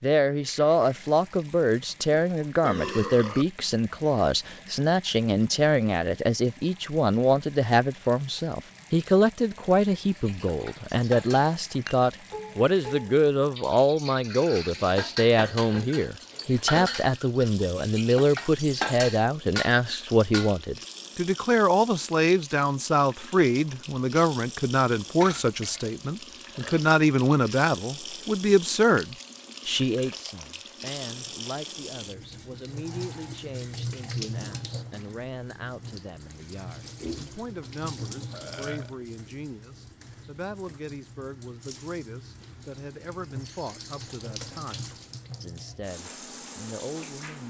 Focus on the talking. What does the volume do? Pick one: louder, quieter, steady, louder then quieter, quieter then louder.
quieter.